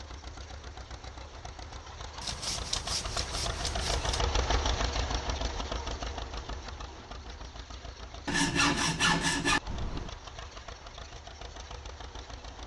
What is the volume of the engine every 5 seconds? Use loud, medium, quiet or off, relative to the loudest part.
loud, loud, medium.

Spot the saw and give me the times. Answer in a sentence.
The saw can be heard from 2.2 to 4.2 s and from 8.2 to 10.1 s.